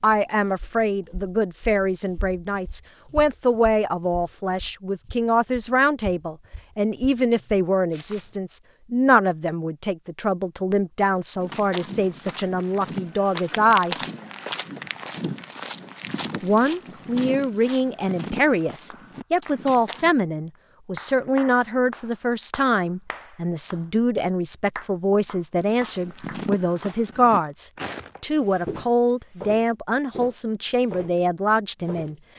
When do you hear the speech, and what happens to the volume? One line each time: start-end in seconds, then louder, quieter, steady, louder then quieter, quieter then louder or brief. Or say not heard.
0.0-13.9 steady
16.4-32.1 steady.